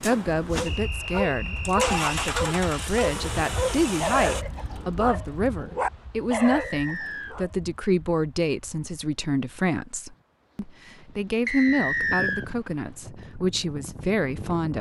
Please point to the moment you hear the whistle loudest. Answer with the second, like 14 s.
12 s.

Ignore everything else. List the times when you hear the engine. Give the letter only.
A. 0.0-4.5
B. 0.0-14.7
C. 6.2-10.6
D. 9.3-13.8
A.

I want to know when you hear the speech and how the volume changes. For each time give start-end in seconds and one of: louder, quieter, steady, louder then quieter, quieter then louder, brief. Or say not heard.
0.0-14.7 steady.